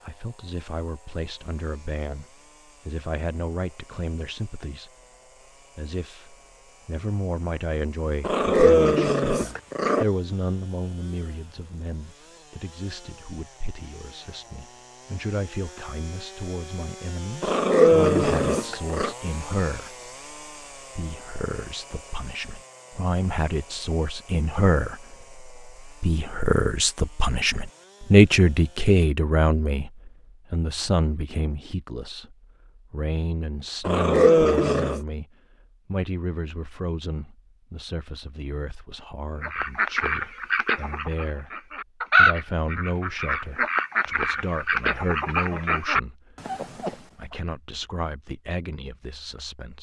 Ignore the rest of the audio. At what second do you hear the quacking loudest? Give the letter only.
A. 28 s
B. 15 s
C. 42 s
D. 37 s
C.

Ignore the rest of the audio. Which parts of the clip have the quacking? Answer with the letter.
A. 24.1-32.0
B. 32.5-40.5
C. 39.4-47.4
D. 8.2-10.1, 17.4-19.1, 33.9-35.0
C.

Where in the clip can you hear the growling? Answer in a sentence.
You can hear the growling from 8.2 to 10.1 s, from 17.4 to 19.1 s and from 33.9 to 35.0 s.